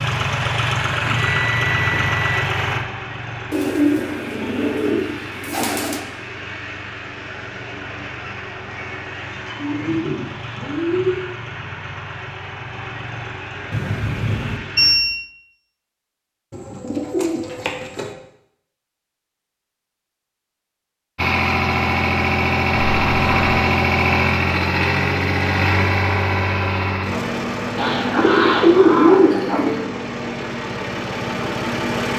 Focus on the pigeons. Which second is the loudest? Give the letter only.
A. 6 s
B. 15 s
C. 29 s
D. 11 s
C.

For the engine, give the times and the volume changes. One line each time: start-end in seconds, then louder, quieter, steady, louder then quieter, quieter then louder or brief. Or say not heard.
0.0-14.9 quieter
21.1-32.1 quieter.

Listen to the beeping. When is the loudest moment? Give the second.
15 s.